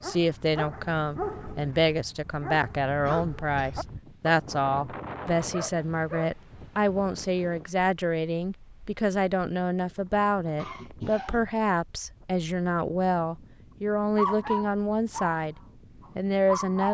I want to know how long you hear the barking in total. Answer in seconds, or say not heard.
9 s.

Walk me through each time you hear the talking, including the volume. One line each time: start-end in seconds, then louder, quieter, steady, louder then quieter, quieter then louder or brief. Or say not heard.
0.0-16.8 steady.